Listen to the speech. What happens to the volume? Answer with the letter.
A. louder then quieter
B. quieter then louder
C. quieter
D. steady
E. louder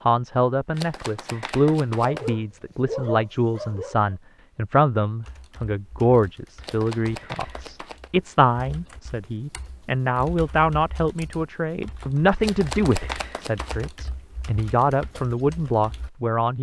D.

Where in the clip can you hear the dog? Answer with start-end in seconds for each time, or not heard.
2.0-4.2.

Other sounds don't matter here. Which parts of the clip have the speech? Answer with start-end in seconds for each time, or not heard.
0.1-16.5.